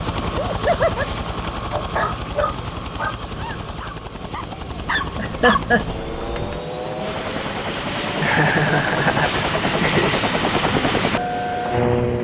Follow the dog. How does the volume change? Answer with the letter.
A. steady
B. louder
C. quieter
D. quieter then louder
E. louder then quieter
D.